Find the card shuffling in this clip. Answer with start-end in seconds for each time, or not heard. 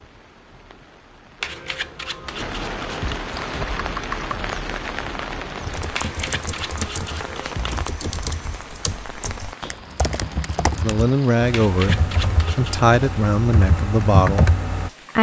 1.4-3.2, 5.9-7.8, 11.5-13.0.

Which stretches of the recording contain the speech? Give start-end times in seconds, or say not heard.
10.8-14.5.